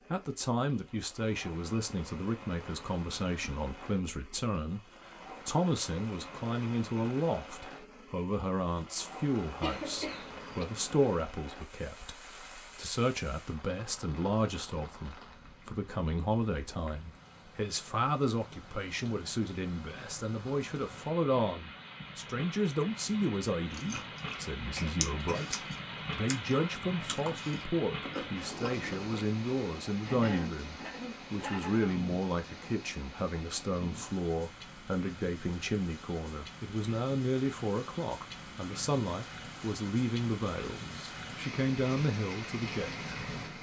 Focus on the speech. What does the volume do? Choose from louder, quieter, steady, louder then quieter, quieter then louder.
steady.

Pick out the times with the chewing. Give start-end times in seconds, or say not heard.
23.6-29.2.